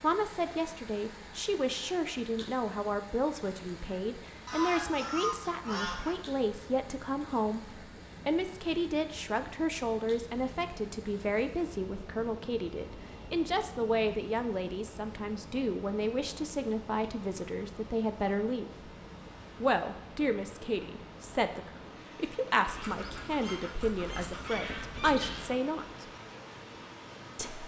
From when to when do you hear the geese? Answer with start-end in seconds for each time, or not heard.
4.5-6.2, 22.6-25.6.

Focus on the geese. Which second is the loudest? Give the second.
5 s.